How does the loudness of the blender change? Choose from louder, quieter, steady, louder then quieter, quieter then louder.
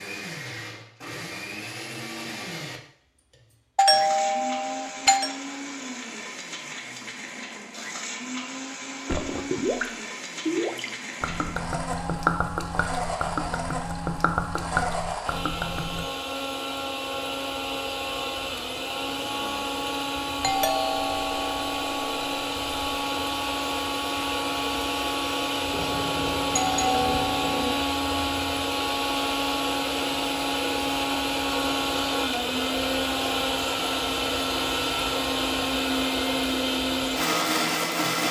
louder.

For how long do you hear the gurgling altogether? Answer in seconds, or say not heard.
7 s.